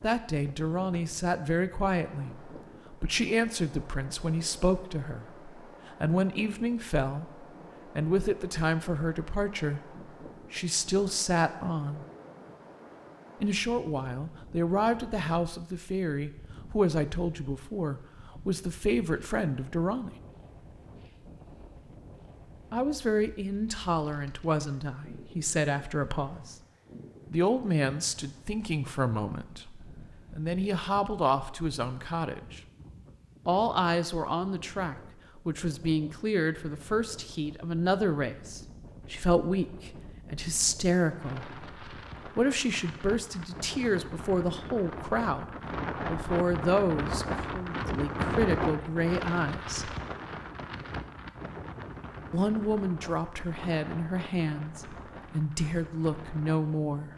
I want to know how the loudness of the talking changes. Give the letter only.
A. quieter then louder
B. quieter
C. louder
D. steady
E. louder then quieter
D.